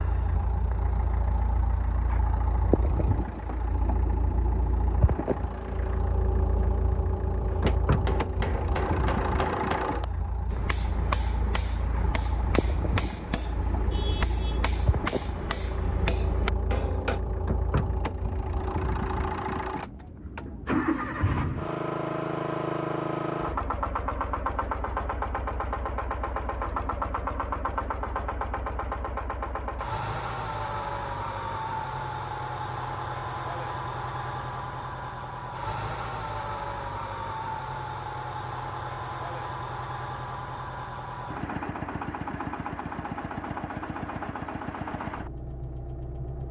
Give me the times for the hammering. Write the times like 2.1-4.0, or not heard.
7.5-17.2.